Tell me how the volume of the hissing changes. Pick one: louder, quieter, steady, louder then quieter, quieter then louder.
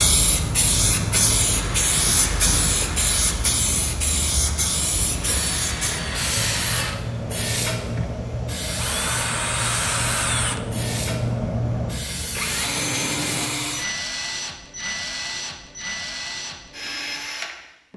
quieter.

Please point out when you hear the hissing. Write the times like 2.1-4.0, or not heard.
0.0-13.5.